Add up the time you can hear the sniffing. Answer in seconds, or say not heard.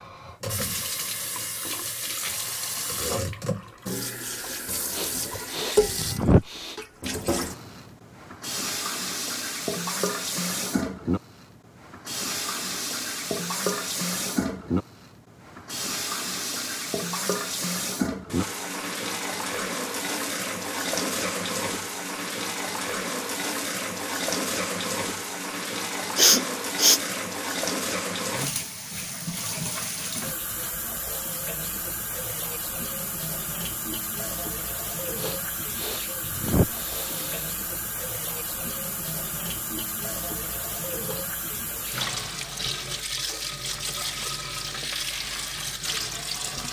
5 s.